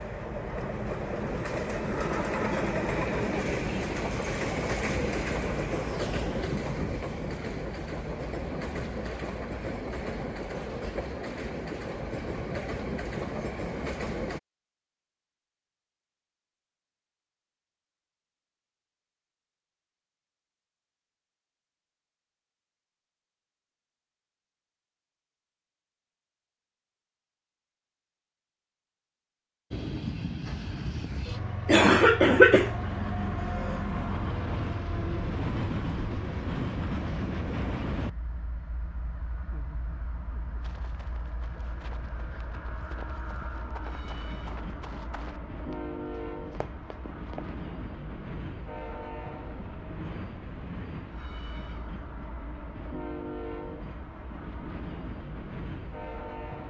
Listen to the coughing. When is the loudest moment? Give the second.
32 s.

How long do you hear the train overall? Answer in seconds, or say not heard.
41 s.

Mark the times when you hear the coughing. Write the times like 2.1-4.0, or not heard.
31.6-33.8.